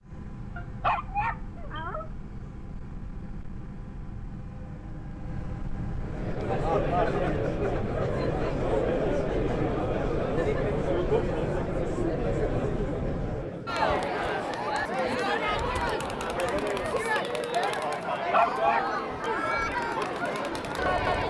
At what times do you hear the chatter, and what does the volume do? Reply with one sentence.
The chatter can be heard from 6.0 to 21.2 s, at a steady volume.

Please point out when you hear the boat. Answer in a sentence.
You can hear the boat from 0.0 to 13.5 s.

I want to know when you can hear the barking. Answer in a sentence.
You can hear the barking from 0.6 to 2.0 s and from 18.3 to 19.6 s.